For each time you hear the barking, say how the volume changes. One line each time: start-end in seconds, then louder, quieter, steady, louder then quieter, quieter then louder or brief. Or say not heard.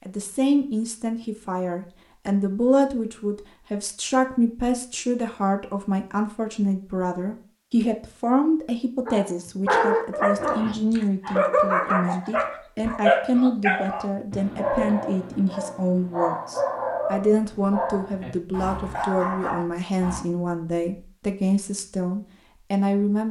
9.1-20.2 quieter.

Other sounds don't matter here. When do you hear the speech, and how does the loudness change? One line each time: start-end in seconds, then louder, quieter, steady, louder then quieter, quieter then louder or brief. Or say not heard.
0.1-23.2 steady.